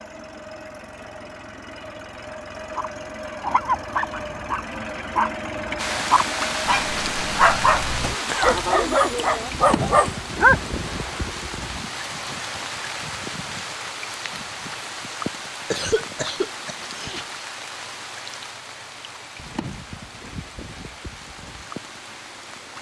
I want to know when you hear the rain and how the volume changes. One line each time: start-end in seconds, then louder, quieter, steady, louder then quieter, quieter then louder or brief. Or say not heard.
5.8-22.7 quieter.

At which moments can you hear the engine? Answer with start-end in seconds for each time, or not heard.
0.0-22.7.